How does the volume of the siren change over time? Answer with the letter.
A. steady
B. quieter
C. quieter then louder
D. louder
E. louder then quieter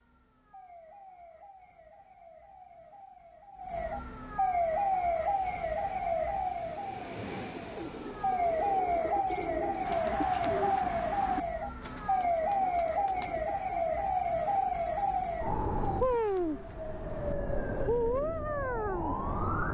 D.